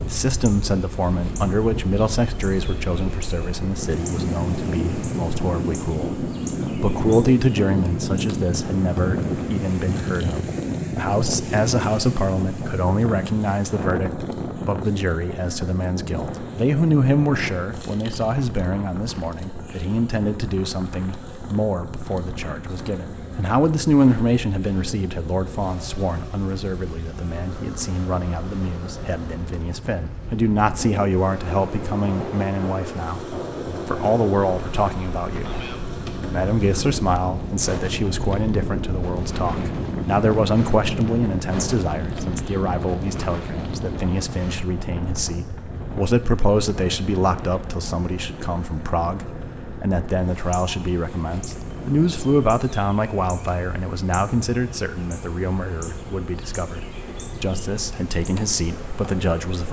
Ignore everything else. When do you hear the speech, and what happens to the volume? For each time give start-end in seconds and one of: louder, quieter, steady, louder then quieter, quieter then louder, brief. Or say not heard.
0.1-59.6 steady.